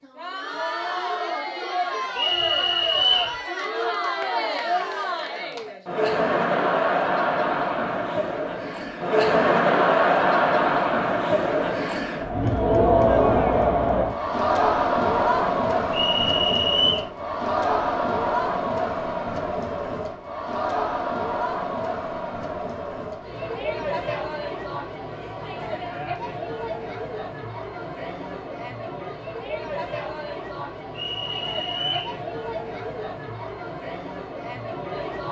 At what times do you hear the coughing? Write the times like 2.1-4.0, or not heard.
not heard.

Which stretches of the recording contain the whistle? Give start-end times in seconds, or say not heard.
2.1-3.4, 15.9-17.1, 30.9-32.1.